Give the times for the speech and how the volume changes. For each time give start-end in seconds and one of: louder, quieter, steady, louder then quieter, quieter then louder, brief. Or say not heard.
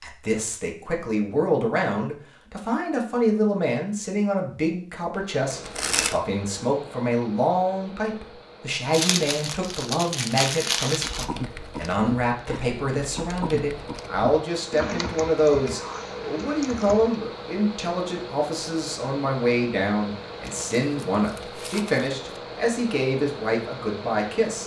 0.0-24.6 steady.